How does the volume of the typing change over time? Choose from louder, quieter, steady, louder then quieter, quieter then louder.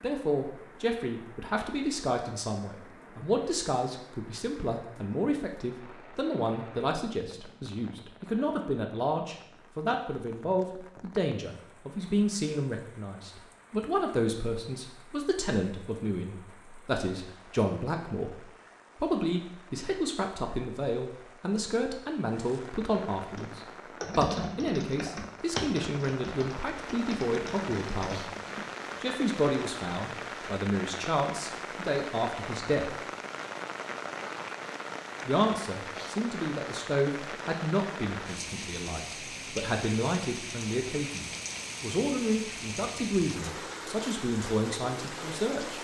quieter.